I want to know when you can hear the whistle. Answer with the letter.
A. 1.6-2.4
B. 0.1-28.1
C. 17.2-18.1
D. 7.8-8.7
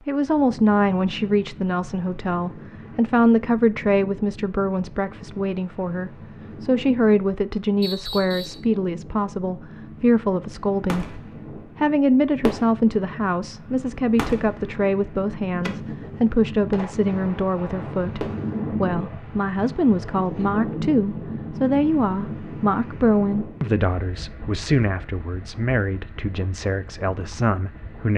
D.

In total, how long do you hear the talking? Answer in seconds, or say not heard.
28 s.